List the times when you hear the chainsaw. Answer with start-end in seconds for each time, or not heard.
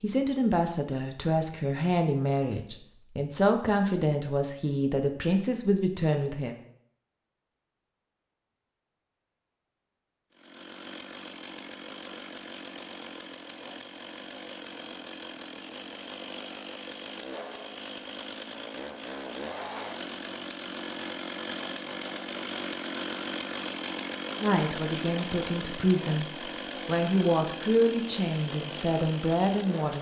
10.3-29.9.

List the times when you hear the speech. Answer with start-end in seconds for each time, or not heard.
0.0-6.5, 24.4-29.9.